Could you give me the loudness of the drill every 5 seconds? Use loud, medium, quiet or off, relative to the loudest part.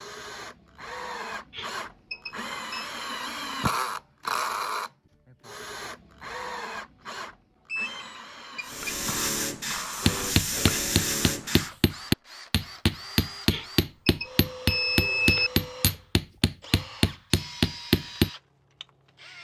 loud, medium, medium, medium.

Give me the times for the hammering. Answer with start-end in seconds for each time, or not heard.
10.1-18.3.